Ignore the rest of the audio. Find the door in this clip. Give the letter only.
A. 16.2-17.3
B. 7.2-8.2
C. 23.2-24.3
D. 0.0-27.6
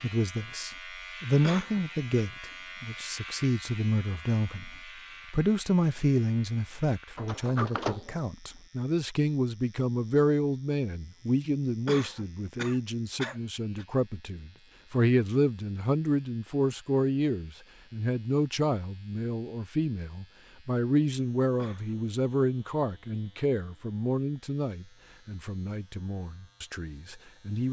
B.